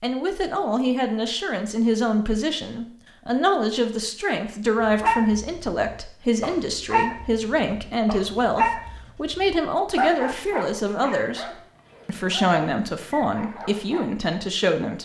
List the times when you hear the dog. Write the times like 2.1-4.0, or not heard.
4.8-14.1.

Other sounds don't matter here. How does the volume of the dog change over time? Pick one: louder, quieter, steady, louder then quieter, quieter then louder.
louder then quieter.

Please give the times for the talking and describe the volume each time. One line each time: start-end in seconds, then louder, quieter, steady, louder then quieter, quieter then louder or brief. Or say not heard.
0.0-15.0 steady.